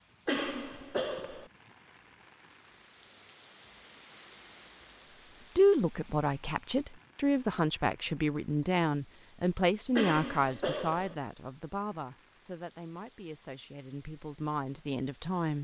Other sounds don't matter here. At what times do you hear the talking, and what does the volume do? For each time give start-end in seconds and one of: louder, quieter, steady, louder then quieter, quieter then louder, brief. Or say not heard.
5.5-15.5 quieter.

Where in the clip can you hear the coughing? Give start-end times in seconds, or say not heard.
0.2-1.5, 9.9-11.2.